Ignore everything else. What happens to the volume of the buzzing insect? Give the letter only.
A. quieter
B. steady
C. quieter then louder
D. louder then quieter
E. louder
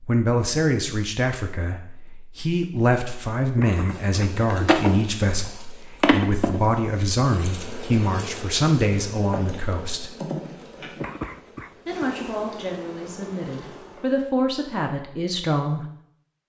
A.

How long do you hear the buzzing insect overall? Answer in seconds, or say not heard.
10 s.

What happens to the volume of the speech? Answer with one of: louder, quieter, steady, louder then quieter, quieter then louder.
steady.